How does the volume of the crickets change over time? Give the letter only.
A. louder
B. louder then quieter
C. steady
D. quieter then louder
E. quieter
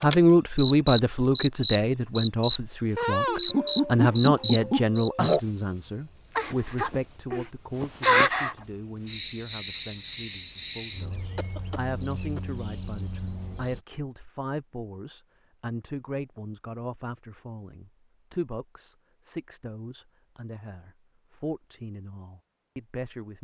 C.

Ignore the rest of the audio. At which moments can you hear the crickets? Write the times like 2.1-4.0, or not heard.
0.0-13.8.